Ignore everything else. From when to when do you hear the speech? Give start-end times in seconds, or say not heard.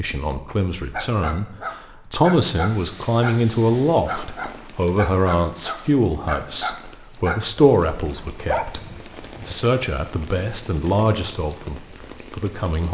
0.0-12.8.